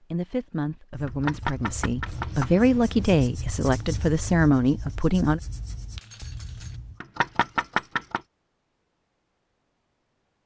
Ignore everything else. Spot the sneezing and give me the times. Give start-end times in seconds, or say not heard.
not heard.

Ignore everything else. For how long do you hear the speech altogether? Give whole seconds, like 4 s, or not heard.
5 s.